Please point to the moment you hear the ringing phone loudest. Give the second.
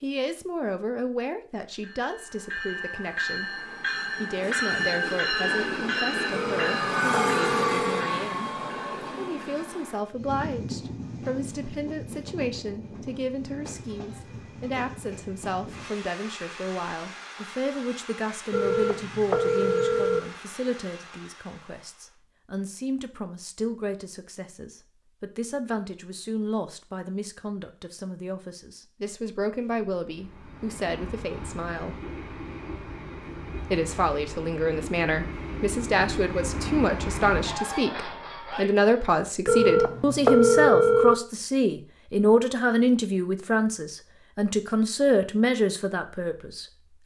40 s.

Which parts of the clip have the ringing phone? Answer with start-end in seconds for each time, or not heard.
6.3-8.1, 18.5-20.2, 39.5-41.1.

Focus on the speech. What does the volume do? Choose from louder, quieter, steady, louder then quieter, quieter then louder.
louder.